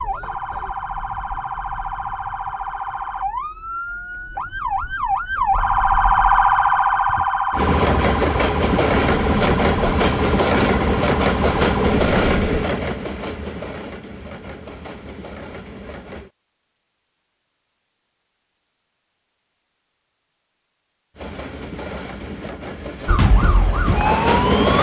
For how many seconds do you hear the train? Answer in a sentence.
The train can be heard for 12 seconds in total.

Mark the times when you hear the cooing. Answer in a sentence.
The cooing can't be heard in this clip.